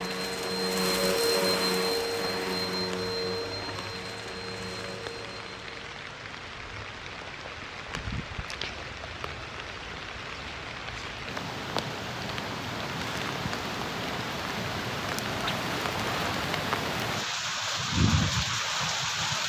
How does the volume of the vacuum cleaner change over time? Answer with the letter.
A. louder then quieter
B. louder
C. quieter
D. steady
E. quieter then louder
C.